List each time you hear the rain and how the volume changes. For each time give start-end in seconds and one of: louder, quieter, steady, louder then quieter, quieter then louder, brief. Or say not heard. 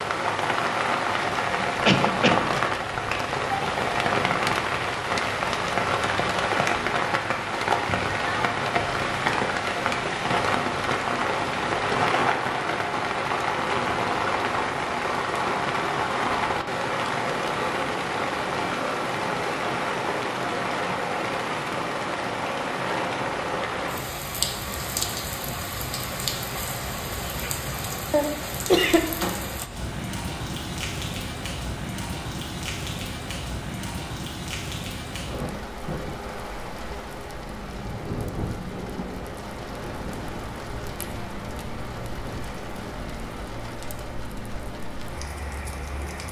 0.0-46.2 quieter.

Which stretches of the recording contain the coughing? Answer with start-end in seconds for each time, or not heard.
1.9-2.5, 28.1-29.1.